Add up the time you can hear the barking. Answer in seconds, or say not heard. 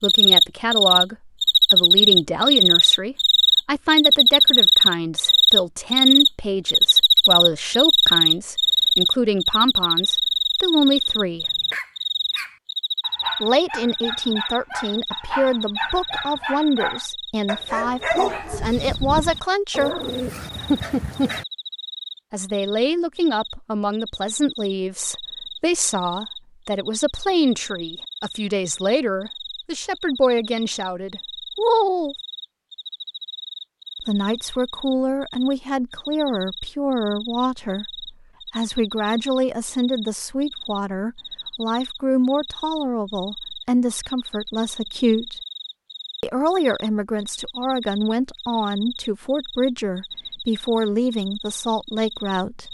10 s.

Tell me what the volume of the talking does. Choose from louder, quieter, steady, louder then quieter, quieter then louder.
steady.